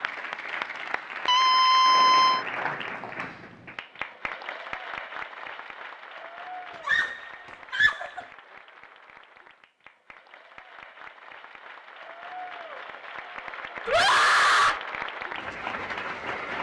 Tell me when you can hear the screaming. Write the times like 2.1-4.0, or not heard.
1.2-2.5, 6.8-8.2, 13.8-14.8.